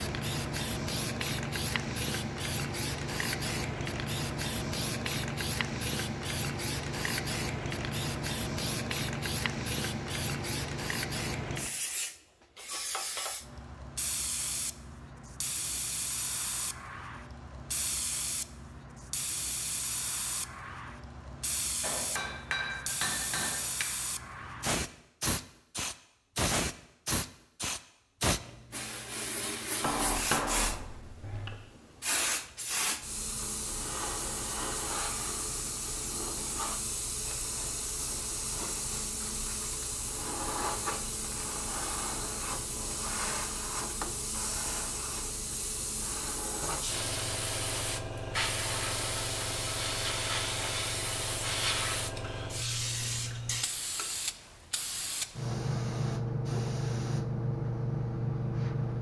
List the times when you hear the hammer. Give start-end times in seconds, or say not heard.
21.8-23.9, 29.8-31.6.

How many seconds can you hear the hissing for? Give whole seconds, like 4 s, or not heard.
59 s.